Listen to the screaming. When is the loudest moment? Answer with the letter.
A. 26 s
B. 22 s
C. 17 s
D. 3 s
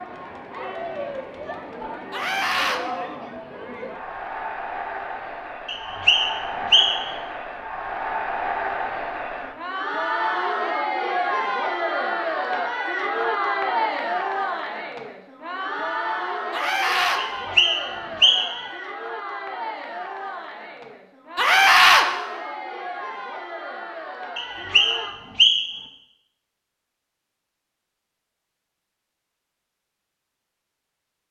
B.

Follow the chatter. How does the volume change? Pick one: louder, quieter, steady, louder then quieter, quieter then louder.
louder then quieter.